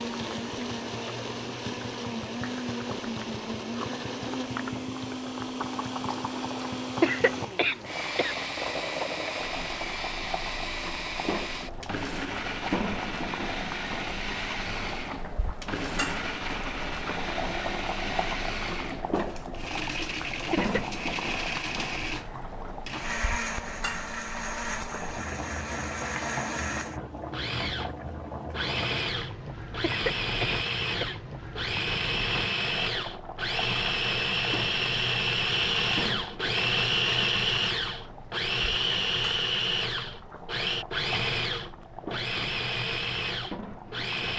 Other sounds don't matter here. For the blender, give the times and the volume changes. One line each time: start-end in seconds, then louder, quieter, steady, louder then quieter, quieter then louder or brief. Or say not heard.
0.0-44.3 louder.